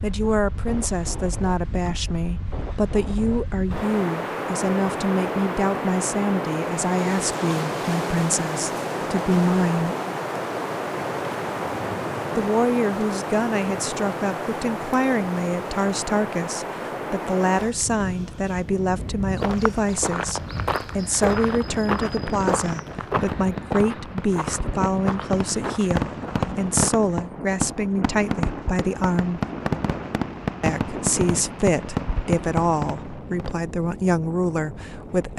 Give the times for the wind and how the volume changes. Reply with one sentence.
You can hear the wind from 0.0 to 35.3 s, getting quieter.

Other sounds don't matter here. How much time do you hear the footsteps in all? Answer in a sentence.
The footsteps can be heard for 8 seconds in total.